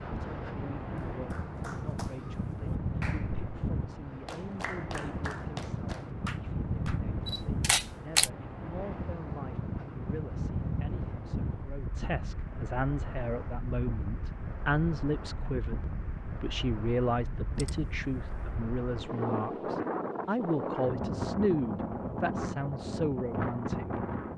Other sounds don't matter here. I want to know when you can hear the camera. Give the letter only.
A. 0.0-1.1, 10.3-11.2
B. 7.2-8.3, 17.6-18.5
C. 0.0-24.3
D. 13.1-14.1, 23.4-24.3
B.